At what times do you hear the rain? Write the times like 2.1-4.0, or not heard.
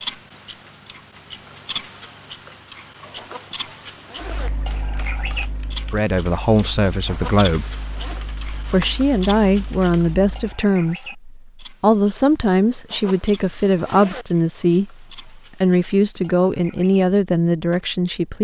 not heard.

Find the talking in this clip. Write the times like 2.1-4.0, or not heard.
5.8-7.7, 8.5-18.3.